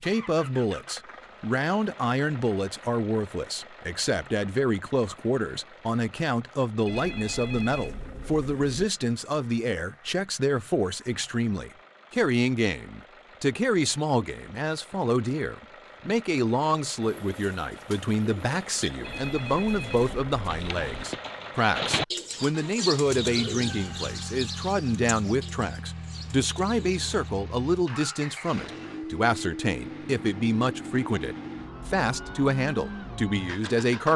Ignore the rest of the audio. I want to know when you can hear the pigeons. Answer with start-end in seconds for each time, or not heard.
17.0-27.3.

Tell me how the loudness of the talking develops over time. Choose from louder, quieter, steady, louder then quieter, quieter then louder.
steady.